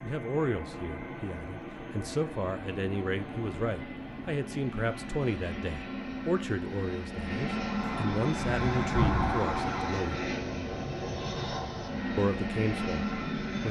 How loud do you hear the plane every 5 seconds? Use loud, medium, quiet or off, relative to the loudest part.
medium, loud, loud.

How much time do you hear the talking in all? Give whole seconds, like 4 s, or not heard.
12 s.